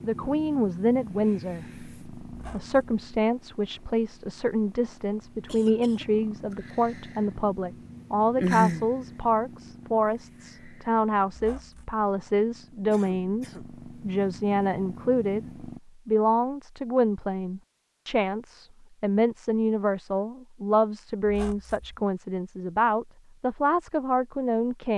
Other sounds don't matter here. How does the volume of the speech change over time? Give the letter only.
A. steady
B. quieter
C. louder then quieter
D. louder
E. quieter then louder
A.